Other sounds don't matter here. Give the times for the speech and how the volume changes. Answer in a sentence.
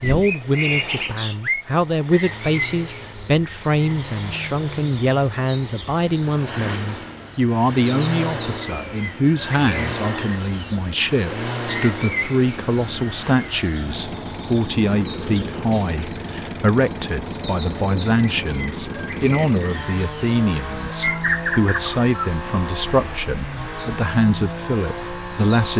You can hear the speech from 0.0 to 25.7 s, at a steady volume.